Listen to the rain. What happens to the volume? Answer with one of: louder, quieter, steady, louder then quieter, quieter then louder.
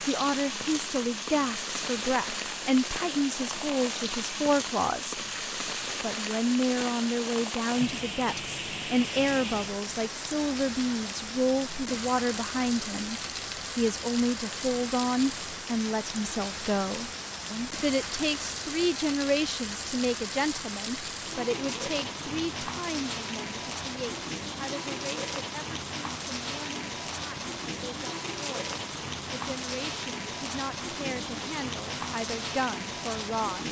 steady.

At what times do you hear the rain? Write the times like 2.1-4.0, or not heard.
0.0-33.6.